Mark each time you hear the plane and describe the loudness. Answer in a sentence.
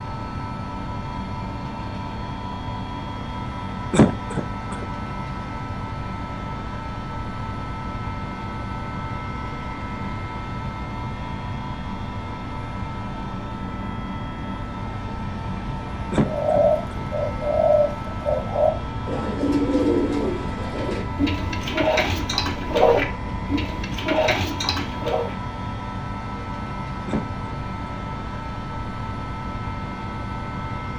The plane can be heard from 0.0 to 30.9 s, at a steady volume.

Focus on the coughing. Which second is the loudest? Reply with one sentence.
The loudest moment of the coughing is at 4 seconds.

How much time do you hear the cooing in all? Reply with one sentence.
The cooing can be heard for 9 seconds in total.